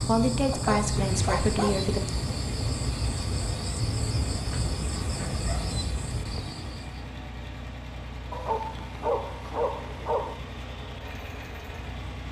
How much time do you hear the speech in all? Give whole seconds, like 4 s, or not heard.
2 s.